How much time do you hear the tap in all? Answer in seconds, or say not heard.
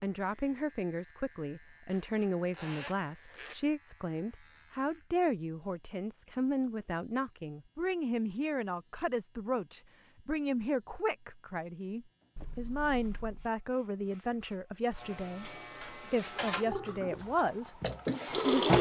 3 s.